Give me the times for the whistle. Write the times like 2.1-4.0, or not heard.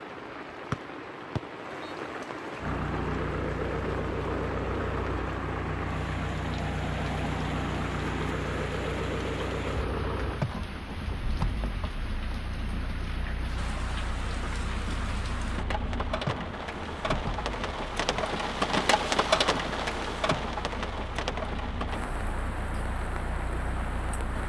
0.7-1.9.